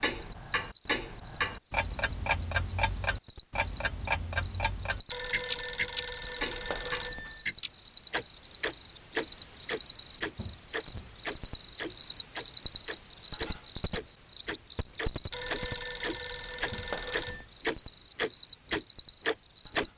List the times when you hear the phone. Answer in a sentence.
The phone can be heard from 5.1 to 7.5 s and from 15.3 to 17.4 s.